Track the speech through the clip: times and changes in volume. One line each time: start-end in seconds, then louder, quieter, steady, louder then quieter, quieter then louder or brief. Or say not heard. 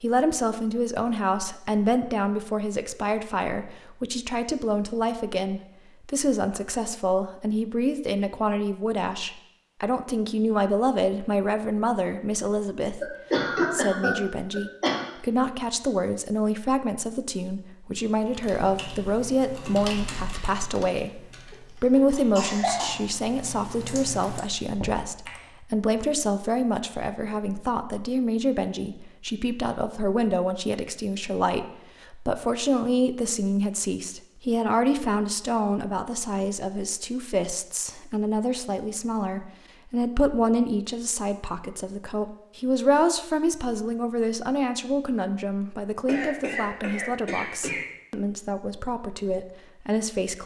0.0-13.1 steady
13.7-50.4 steady.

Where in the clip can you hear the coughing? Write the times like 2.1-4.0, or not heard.
13.0-15.1, 21.5-23.5, 46.0-47.9.